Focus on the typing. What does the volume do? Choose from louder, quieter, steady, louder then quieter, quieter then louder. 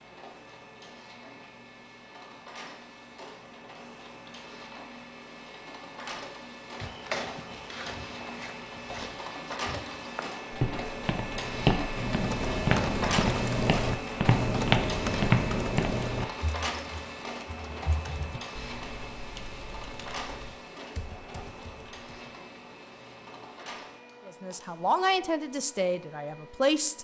quieter.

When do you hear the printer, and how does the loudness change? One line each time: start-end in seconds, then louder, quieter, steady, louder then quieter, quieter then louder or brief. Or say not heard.
0.0-26.9 louder then quieter.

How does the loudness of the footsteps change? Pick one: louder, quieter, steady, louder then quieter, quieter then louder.
louder.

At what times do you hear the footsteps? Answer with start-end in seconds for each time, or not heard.
6.8-15.9.